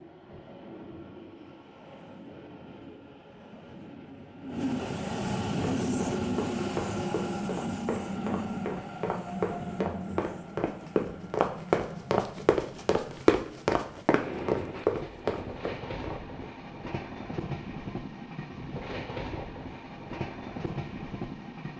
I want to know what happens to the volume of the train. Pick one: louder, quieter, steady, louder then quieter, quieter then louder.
louder then quieter.